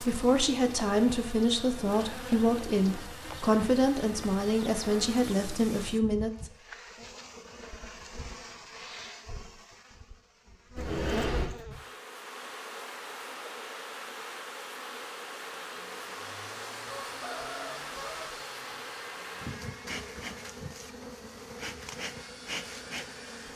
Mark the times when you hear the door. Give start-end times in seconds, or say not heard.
10.8-11.5.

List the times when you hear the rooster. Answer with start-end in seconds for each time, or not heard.
16.9-18.3.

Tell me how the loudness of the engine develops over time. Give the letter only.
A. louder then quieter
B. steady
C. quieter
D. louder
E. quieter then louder
E.